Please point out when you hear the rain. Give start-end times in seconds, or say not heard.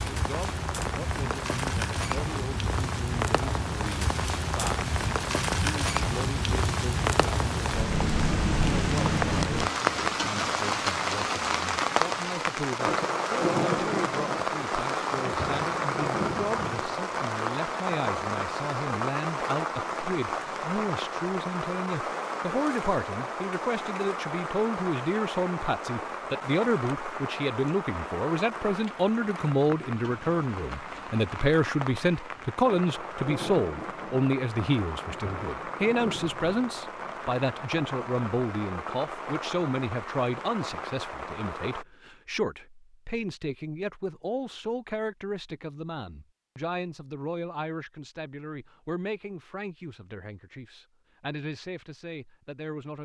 0.0-41.9.